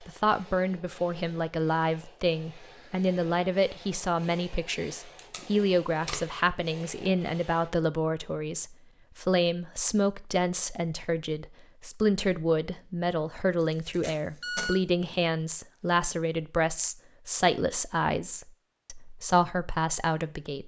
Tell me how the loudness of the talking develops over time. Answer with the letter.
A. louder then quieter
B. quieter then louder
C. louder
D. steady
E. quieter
D.